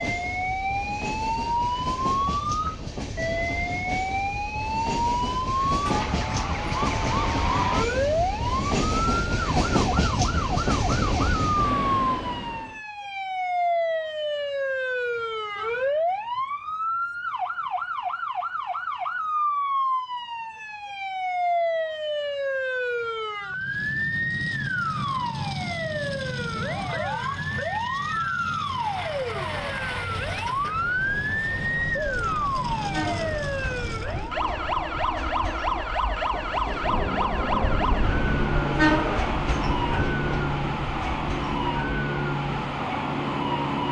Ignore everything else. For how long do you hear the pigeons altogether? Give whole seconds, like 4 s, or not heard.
not heard.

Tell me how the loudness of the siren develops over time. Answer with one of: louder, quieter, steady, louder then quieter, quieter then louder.
steady.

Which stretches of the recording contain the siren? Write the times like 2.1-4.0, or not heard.
0.0-43.8.